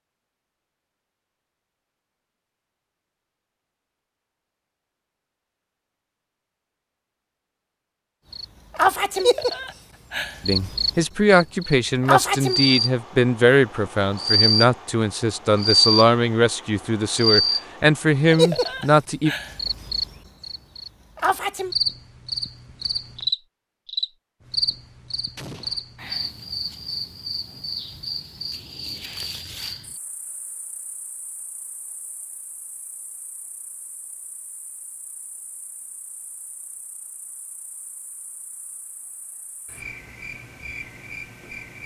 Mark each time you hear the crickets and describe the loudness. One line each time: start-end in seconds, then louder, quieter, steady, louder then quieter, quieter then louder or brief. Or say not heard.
8.3-41.8 quieter.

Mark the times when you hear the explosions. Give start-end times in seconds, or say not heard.
25.4-25.9.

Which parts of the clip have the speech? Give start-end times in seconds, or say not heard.
10.4-19.3.